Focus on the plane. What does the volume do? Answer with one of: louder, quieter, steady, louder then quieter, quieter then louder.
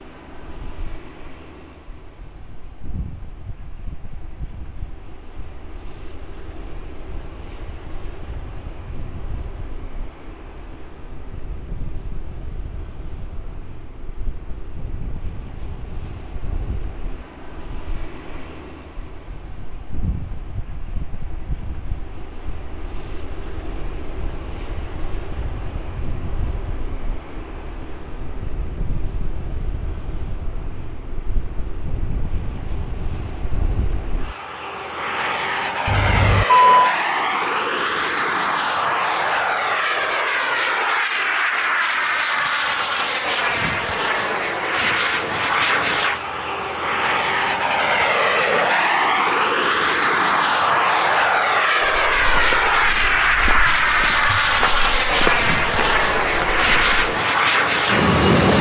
louder.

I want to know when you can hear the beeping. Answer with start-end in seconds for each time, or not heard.
35.9-37.0.